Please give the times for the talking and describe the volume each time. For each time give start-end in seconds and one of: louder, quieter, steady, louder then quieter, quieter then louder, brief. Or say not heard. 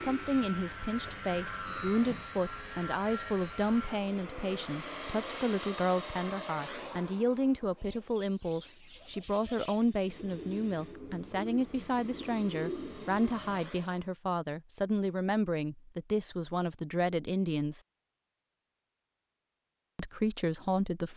0.0-17.8 steady
19.9-21.1 brief.